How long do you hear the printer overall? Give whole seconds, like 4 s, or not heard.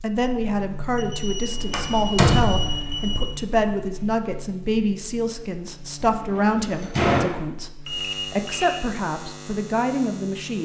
not heard.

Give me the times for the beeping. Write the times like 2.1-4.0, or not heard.
0.9-3.4, 7.8-8.8.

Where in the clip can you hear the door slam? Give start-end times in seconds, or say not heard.
1.7-2.8, 6.0-7.3.